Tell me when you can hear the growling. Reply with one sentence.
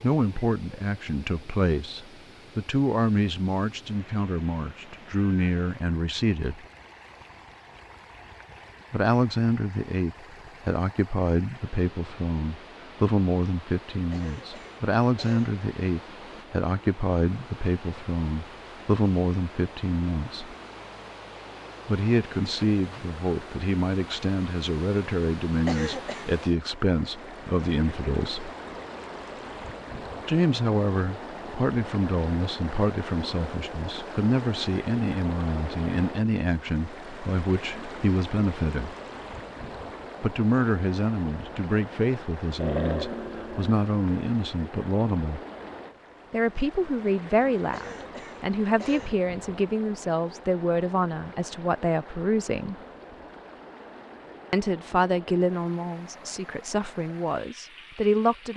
The growling can be heard from 42.5 to 43.8 s.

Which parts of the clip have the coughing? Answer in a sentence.
You can hear the coughing from 14.1 to 15.6 s, from 25.6 to 26.2 s and from 47.7 to 49.1 s.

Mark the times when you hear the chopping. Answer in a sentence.
You can't hear the chopping here.